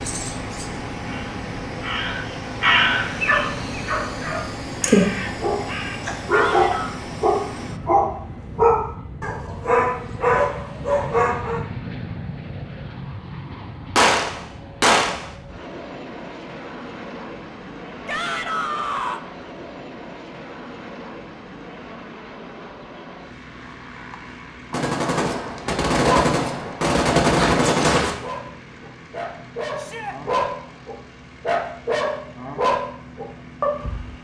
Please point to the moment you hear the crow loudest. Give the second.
3 s.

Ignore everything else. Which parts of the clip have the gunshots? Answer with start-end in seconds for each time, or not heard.
13.9-15.3, 24.7-28.1.